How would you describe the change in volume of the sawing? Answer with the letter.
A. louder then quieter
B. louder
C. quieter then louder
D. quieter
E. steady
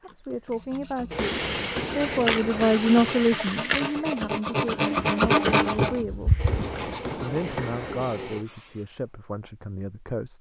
A.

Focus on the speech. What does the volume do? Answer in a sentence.
The loudness of the speech goes up, then down.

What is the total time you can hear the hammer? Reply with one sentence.
The hammer can be heard for 4 seconds in total.